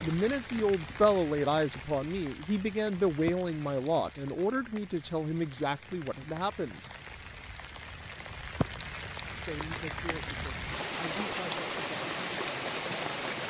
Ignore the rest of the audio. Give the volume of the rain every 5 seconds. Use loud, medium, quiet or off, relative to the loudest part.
medium, medium, loud.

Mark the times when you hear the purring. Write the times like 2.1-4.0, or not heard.
not heard.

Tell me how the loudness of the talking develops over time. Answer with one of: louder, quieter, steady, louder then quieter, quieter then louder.
quieter.